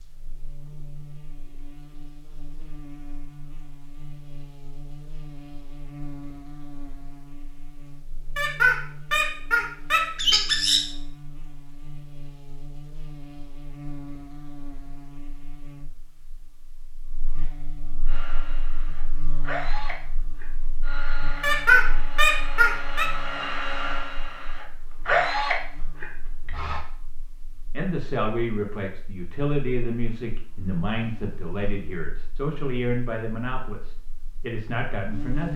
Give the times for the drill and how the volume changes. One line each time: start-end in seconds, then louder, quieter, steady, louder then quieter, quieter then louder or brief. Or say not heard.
18.1-26.8 louder.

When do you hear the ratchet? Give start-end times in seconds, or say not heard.
not heard.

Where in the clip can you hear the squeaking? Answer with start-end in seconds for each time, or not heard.
8.3-10.8, 21.4-23.1.